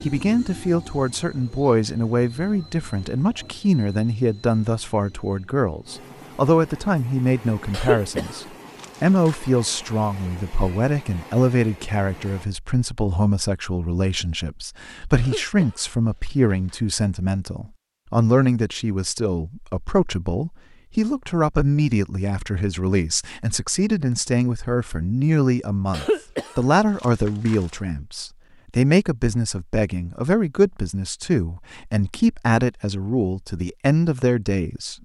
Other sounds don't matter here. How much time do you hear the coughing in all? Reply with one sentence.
You can hear the coughing for 5 seconds altogether.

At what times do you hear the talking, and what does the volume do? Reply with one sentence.
The talking can be heard from 0.0 to 35.0 s, at a steady volume.